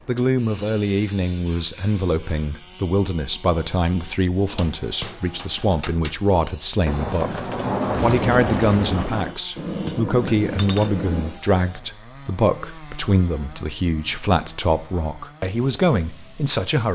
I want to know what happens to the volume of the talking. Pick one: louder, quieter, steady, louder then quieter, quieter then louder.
steady.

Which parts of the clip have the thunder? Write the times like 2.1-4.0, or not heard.
6.8-9.3.